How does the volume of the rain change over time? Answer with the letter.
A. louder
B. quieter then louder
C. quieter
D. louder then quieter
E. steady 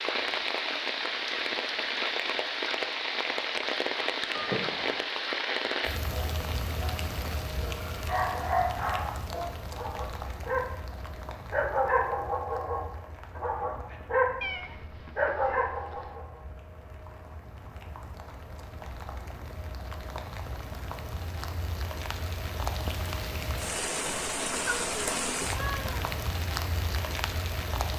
B.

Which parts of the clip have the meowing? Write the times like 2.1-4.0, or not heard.
4.3-5.0, 14.4-16.1, 24.6-26.1.